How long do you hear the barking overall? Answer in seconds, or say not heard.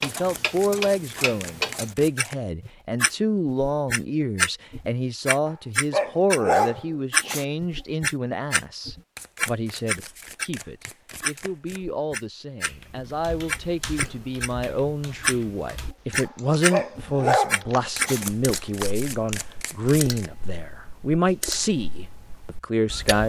4 s.